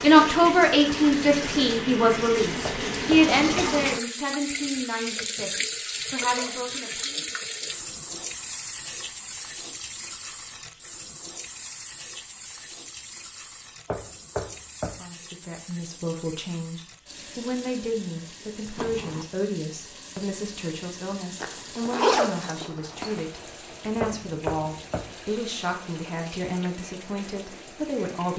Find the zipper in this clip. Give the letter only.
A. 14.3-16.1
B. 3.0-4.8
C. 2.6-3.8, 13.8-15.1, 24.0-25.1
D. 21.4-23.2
D.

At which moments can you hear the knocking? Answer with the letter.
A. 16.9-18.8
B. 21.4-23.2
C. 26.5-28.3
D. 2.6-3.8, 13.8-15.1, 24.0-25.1
D.